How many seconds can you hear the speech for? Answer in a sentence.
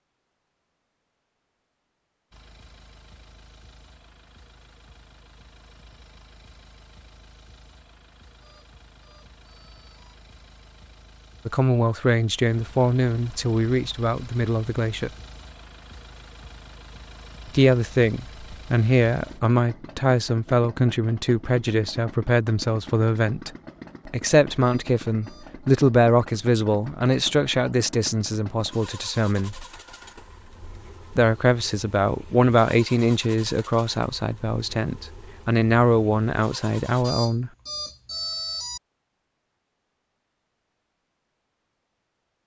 The speech can be heard for 22 seconds in total.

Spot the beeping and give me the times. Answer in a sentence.
You can hear the beeping from 8.4 to 10.2 s, from 24.6 to 25.6 s and from 37.0 to 38.8 s.